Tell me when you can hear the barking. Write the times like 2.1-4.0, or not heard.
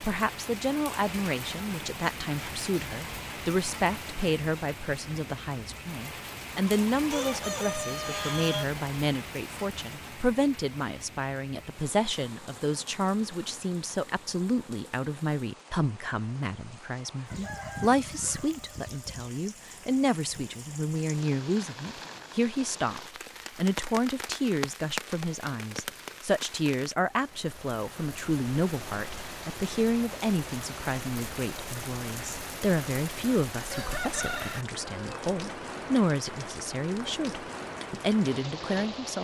not heard.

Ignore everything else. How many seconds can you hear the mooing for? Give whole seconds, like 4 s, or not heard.
not heard.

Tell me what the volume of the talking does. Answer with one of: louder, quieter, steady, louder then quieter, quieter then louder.
steady.